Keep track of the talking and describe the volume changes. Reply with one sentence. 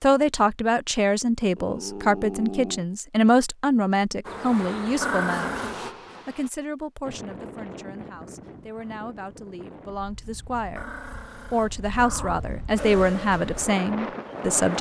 The loudness of the talking goes down, then up.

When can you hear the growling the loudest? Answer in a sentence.
The loudest moment of the growling is at 5 seconds.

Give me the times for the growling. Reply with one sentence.
You can hear the growling from 1.6 to 2.9 s, from 5.0 to 5.8 s and from 10.8 to 12.4 s.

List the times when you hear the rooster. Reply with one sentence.
You can't hear the rooster here.